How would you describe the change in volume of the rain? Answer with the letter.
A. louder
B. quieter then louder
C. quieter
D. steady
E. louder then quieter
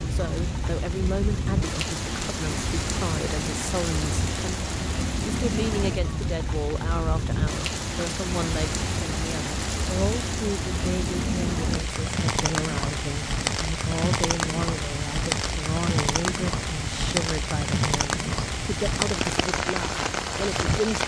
D.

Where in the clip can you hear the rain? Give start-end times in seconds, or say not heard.
0.0-21.0.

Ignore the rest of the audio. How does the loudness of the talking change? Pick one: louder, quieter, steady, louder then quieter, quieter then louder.
steady.